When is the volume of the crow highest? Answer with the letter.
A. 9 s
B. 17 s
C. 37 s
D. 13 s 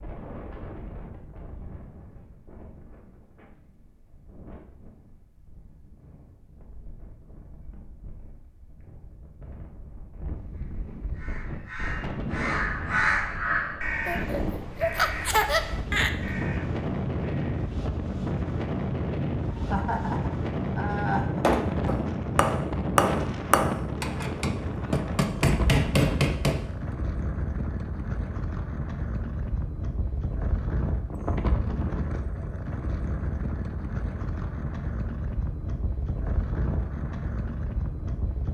D.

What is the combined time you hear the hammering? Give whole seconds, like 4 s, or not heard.
5 s.